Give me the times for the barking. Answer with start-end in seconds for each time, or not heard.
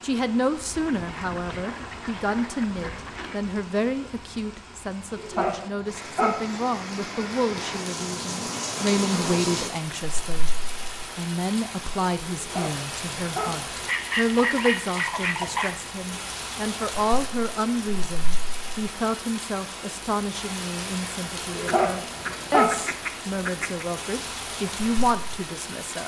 5.2-6.6, 12.3-13.7, 21.5-22.9.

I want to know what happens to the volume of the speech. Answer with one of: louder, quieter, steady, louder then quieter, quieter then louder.
steady.